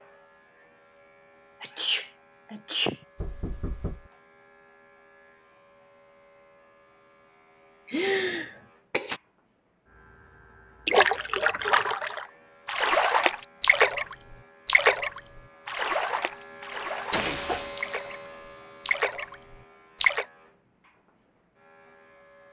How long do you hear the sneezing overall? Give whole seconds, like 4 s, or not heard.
3 s.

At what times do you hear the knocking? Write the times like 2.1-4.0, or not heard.
3.1-4.1.